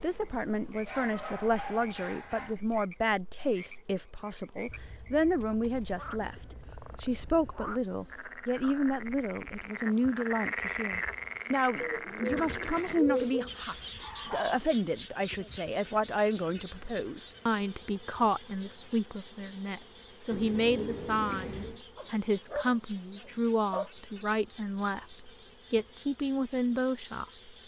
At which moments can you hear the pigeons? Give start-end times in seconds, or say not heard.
4.7-7.6, 11.8-13.6, 20.3-21.9.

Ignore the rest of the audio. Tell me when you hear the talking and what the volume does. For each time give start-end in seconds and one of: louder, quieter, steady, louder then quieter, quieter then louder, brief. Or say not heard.
0.0-27.2 steady.